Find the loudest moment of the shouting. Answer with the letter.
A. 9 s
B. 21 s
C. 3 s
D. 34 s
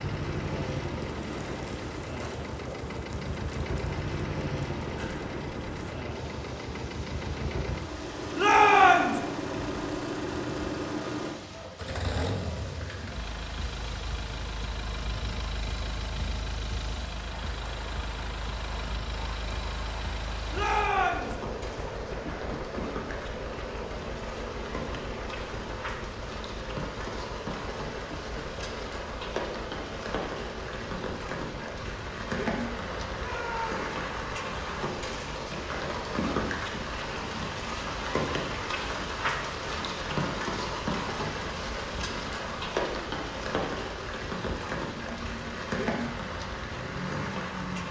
A.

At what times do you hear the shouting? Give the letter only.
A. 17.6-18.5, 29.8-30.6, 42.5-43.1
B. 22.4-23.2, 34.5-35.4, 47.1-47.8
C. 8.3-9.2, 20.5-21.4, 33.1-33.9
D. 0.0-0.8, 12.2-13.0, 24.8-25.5
C.